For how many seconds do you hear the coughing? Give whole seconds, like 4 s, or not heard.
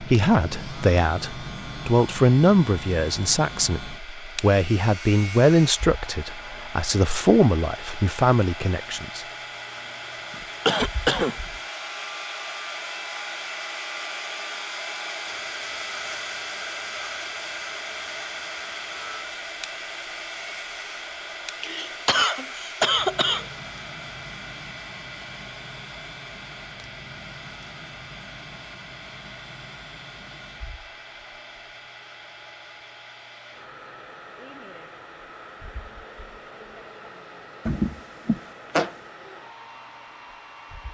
4 s.